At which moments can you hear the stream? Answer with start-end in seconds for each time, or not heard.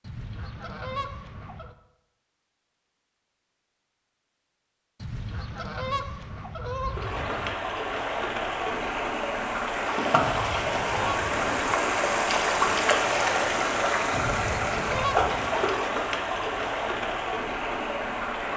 6.8-18.5.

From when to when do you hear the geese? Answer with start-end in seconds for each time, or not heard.
0.0-1.8, 5.0-7.6, 10.2-11.5, 14.1-15.6.